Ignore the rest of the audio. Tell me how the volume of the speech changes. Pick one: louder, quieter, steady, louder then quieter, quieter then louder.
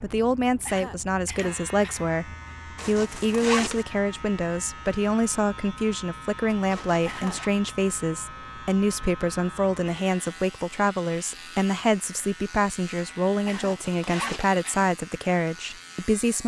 steady.